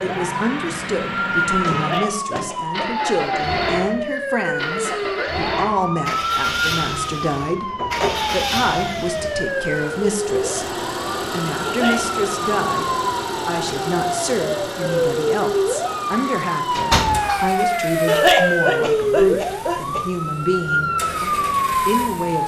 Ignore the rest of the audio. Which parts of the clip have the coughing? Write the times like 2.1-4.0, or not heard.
1.7-2.9, 11.6-12.2, 18.1-20.1.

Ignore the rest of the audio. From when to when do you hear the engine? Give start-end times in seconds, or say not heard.
0.0-22.4.